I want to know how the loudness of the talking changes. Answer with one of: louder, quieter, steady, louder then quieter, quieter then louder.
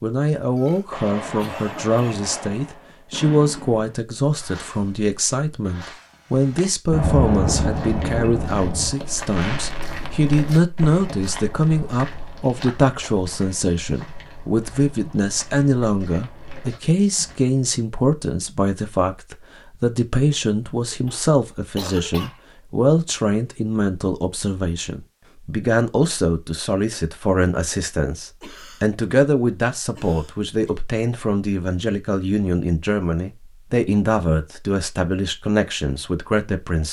steady.